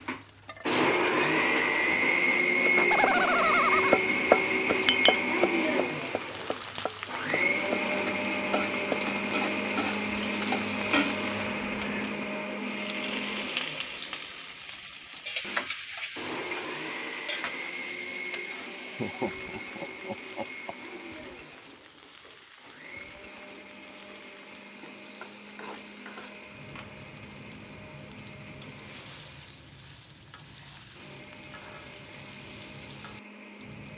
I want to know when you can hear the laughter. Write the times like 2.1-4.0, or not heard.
2.8-4.0, 18.9-20.8.